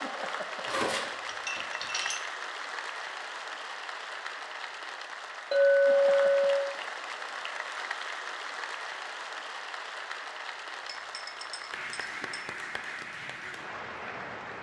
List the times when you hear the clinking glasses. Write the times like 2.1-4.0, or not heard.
0.7-2.2, 5.5-6.7, 10.8-12.4.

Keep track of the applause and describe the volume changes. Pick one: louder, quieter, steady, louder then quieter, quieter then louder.
steady.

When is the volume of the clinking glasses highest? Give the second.
6 s.